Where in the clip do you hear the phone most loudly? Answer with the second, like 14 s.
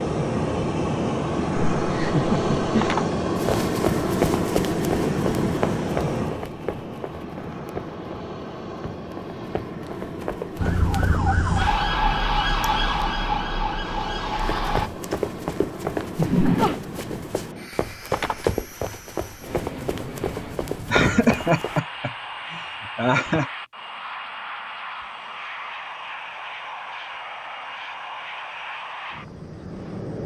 3 s.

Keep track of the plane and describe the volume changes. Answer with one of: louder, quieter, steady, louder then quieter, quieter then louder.
quieter.